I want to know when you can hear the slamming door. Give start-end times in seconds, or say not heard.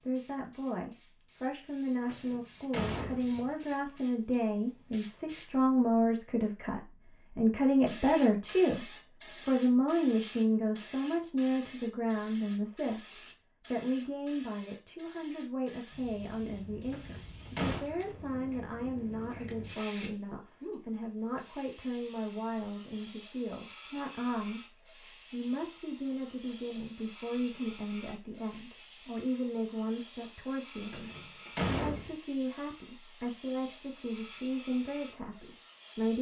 2.0-3.5, 16.9-17.9, 30.9-32.1.